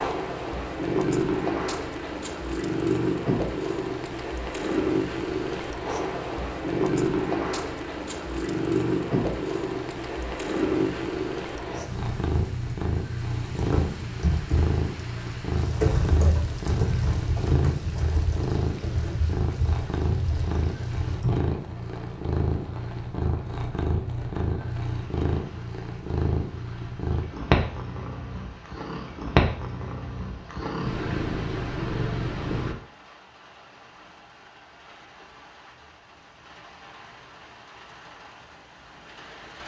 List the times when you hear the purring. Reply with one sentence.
The purring can be heard from 0.0 to 32.8 s.